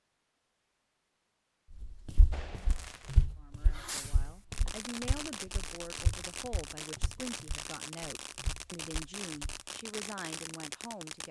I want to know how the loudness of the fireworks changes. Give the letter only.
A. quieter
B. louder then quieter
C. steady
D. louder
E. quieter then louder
C.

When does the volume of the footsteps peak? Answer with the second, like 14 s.
3 s.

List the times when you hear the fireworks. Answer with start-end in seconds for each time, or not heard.
2.3-11.2.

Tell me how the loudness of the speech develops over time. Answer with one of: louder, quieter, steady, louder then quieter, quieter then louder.
steady.